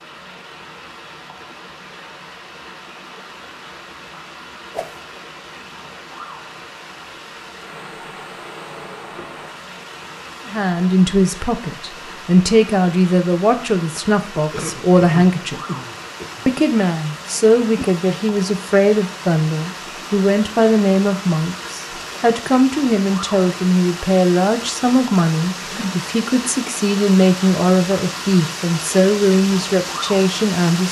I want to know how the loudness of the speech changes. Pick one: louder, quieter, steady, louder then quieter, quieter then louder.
steady.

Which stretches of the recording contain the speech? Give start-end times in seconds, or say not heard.
10.4-15.6, 16.4-30.8.